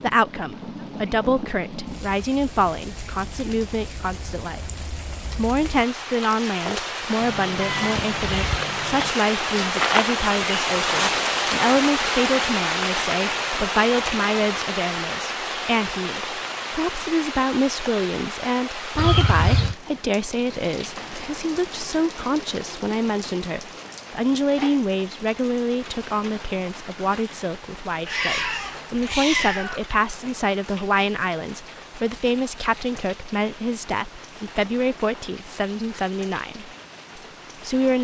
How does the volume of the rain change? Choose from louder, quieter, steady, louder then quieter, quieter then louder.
louder then quieter.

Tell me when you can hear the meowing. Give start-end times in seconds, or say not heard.
7.2-9.1, 18.9-19.8, 28.1-29.8.